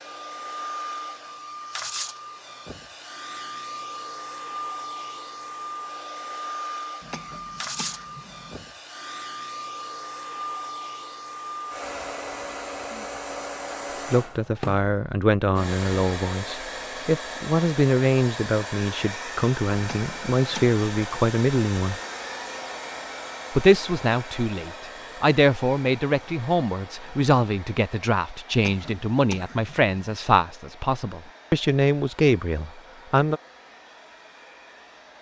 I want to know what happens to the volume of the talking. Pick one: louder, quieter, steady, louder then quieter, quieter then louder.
steady.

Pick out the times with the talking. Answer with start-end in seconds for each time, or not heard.
14.1-22.0, 23.5-33.4.